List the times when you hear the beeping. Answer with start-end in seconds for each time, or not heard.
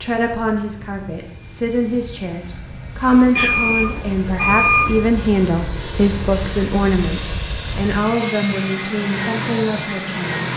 3.4-5.0.